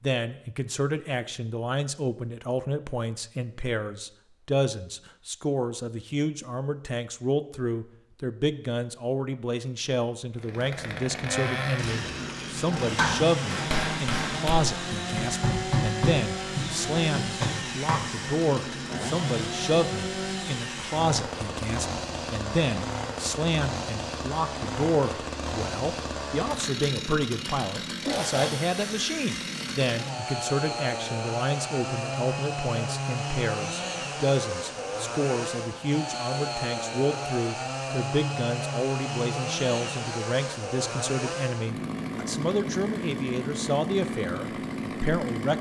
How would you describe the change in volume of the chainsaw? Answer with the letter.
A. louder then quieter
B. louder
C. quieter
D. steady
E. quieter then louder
D.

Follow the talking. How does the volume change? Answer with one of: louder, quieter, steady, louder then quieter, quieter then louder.
steady.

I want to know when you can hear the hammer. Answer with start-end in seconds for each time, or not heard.
12.8-18.1.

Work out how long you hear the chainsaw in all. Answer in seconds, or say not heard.
35 s.